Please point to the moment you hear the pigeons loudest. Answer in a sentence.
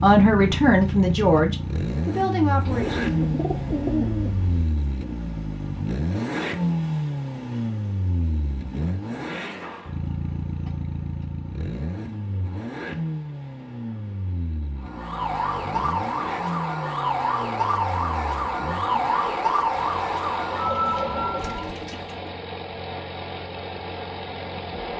The loudest moment of the pigeons is at 4 seconds.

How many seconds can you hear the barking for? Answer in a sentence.
You can't hear the barking here.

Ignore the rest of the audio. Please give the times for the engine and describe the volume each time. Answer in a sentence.
The engine can be heard from 0.0 to 24.9 s, getting quieter.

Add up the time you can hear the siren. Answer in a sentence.
The siren can be heard for 7 seconds in total.